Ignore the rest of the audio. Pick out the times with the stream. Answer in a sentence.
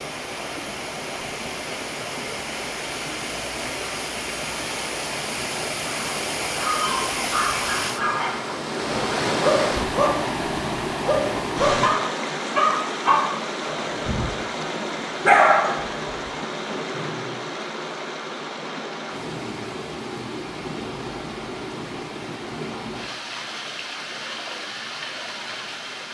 You can hear the stream from 0.0 to 26.0 s.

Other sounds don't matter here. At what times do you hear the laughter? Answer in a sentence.
You can't hear the laughter here.